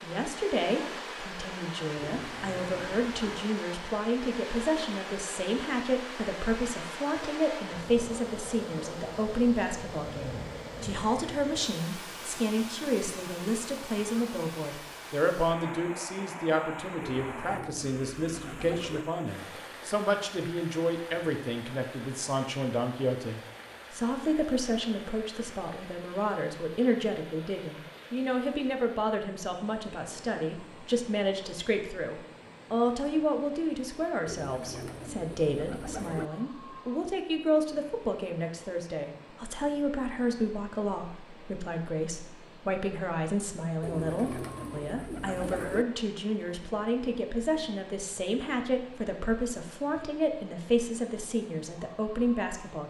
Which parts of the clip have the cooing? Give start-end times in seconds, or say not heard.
1.9-3.5, 17.1-19.1, 34.2-36.2, 43.8-45.9.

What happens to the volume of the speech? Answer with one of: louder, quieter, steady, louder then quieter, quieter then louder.
steady.